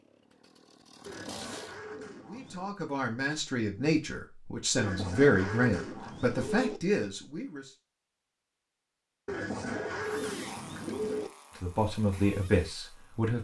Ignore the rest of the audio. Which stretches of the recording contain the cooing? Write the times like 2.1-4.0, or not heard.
1.1-2.8, 4.8-6.8, 9.2-11.3.